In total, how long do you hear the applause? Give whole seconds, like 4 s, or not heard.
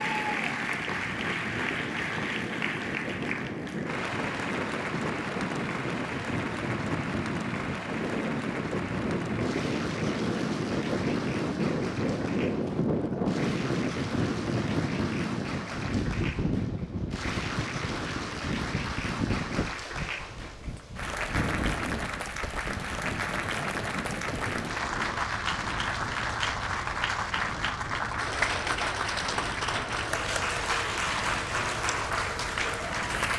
33 s.